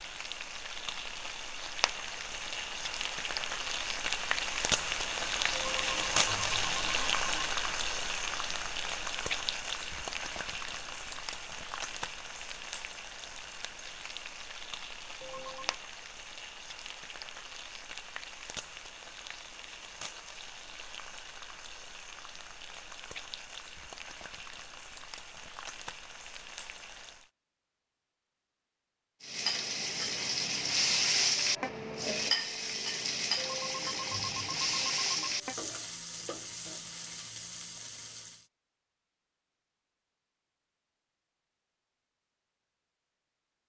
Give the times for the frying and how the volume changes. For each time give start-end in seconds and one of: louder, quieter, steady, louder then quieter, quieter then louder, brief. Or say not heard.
0.0-27.3 quieter
29.2-38.5 quieter.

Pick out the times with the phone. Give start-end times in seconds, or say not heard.
5.5-7.5, 15.2-15.8, 33.4-35.4.